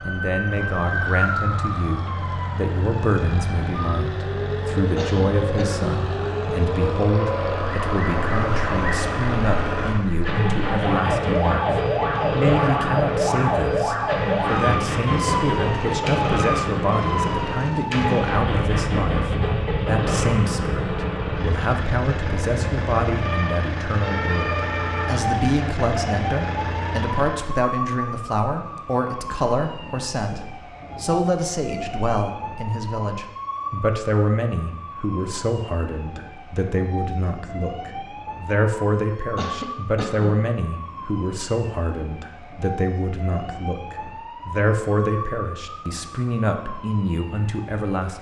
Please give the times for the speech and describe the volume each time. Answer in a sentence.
The speech can be heard from 0.0 to 48.1 s, at a steady volume.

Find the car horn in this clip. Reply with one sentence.
You can't hear the car horn here.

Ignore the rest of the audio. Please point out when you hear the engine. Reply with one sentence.
The engine can be heard from 0.0 to 27.6 s.